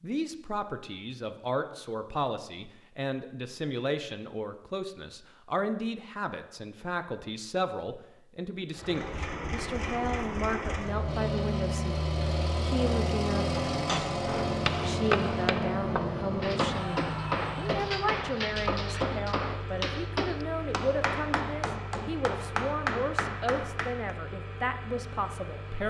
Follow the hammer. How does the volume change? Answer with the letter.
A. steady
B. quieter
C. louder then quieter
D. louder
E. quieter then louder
A.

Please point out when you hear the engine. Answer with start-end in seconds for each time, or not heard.
8.7-25.8.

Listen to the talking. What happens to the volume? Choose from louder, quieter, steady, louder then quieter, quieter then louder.
steady.